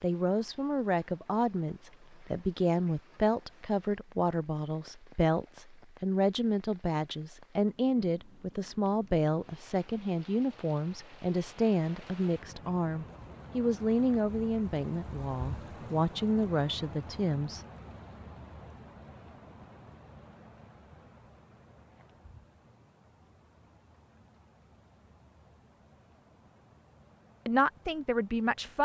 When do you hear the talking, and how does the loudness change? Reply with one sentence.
The talking can be heard from 0.0 to 17.6 s, at a steady volume; and briefly from 27.4 to 28.8 s.